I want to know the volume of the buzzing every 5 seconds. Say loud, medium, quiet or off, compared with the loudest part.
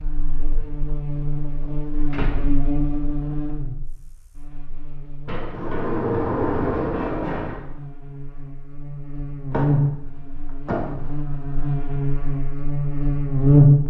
medium, medium, loud.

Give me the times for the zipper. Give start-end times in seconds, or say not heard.
not heard.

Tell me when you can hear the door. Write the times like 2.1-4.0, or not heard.
1.6-2.5, 5.2-7.6, 9.5-11.1.